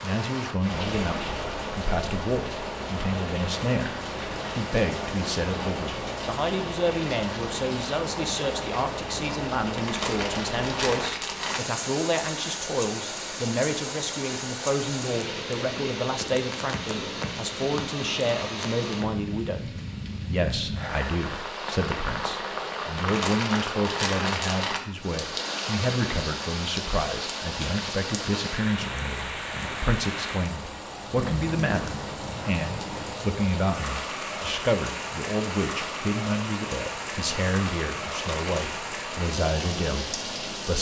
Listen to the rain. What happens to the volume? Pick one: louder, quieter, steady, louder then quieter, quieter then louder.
steady.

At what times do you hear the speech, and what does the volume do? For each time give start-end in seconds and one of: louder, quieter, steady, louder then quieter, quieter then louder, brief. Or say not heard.
0.0-40.7 steady.